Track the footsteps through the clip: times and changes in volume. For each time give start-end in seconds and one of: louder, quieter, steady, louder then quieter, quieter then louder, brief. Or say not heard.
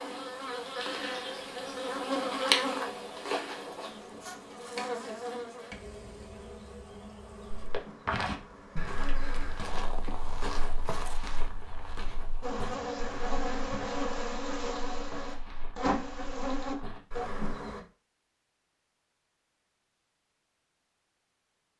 7.5-17.6 quieter.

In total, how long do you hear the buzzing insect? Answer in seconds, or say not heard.
15 s.